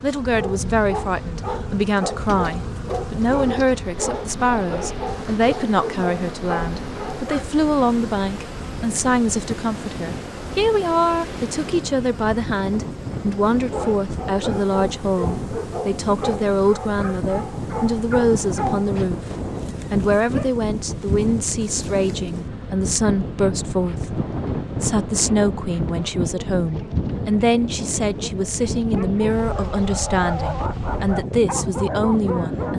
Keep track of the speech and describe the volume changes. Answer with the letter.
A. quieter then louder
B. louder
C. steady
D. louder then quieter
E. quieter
C.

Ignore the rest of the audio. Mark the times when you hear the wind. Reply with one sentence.
The wind can be heard from 0.0 to 32.7 s.